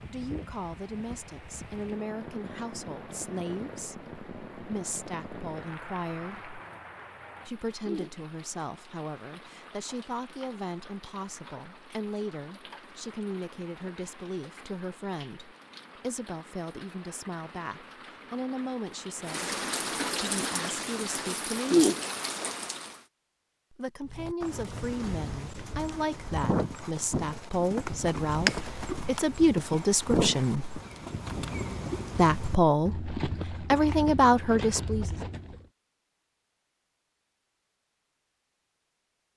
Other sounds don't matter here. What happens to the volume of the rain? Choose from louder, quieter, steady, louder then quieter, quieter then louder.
quieter then louder.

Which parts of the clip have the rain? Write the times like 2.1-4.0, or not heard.
0.0-23.0.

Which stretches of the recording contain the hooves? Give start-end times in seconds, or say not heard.
24.1-35.6.